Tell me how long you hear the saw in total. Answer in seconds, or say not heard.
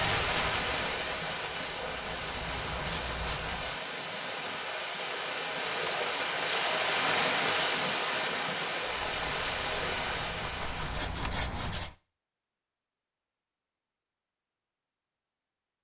7 s.